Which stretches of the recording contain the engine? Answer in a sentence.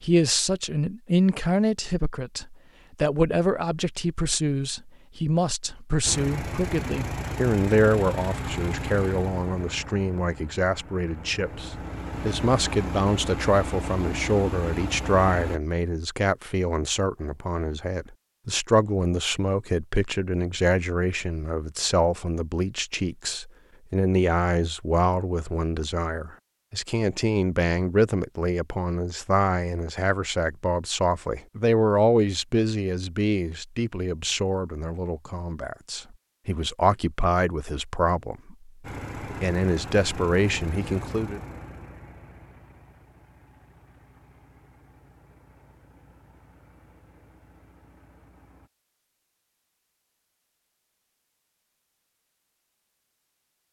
The engine can be heard from 6.0 to 15.6 s and from 38.8 to 48.7 s.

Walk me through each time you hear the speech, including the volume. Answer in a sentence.
You can hear the speech from 0.0 to 38.7 s, at a steady volume; and briefly from 39.4 to 41.4 s.